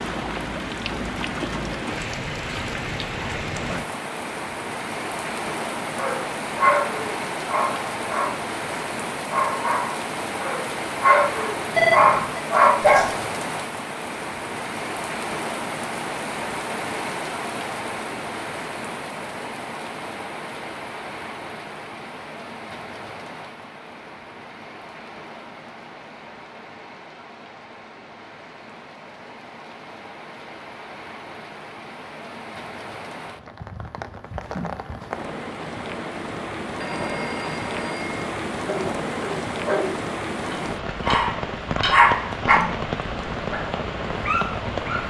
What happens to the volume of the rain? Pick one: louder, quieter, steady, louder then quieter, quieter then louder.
quieter then louder.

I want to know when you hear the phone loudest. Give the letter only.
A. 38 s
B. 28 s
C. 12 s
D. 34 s
C.